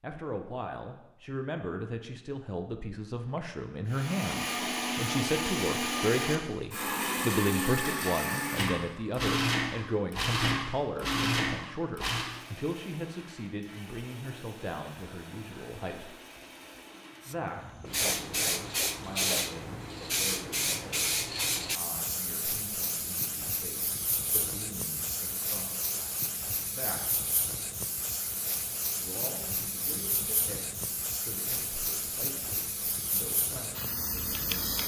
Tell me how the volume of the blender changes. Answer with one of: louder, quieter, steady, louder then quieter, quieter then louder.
quieter.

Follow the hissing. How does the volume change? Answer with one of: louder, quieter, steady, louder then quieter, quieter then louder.
quieter.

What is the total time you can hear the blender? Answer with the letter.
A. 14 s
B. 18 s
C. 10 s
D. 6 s
A.